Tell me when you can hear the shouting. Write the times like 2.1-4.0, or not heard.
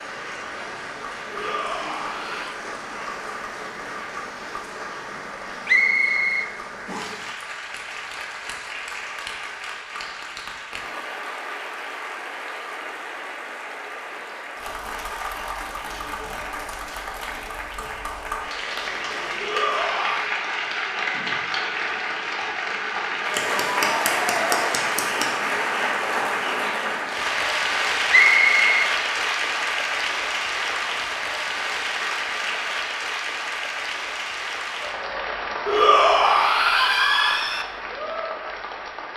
1.3-2.6, 19.4-20.4, 35.6-37.6.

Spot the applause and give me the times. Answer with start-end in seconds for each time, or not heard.
0.0-39.1.